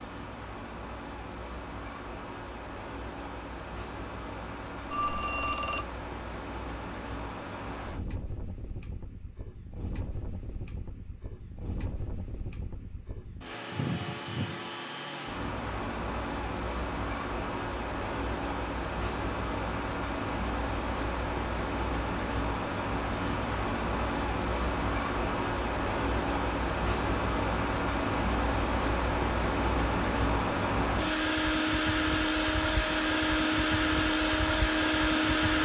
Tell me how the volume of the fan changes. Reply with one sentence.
The loudness of the fan goes up.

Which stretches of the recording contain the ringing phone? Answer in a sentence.
The ringing phone can be heard from 4.9 to 5.8 s.